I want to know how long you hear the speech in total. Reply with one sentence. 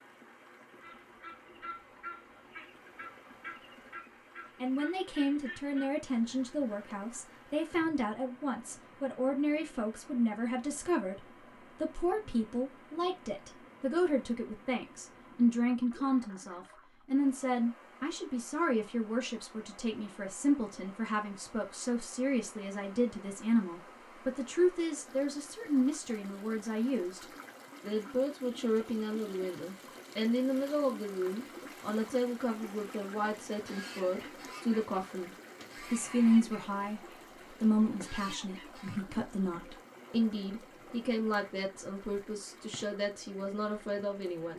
The speech can be heard for 40 seconds in total.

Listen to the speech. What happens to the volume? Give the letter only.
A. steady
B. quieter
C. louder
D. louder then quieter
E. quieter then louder
A.